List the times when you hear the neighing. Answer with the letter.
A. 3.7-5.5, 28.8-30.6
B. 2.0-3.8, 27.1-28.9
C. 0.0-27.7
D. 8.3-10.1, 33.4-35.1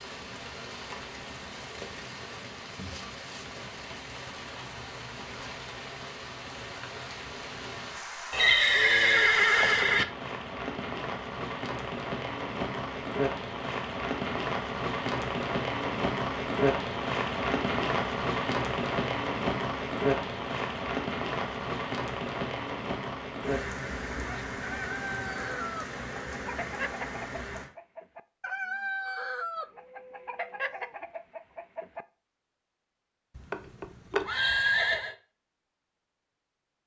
D.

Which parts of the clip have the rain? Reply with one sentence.
The rain can be heard from 0.0 to 27.7 s.